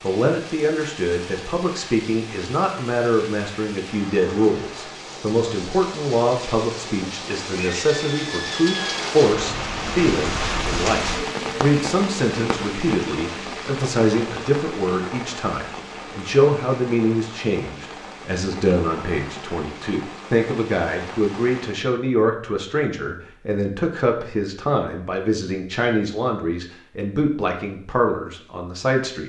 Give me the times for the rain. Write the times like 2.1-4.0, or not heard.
0.0-21.9.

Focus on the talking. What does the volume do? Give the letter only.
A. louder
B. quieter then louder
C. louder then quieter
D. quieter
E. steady
E.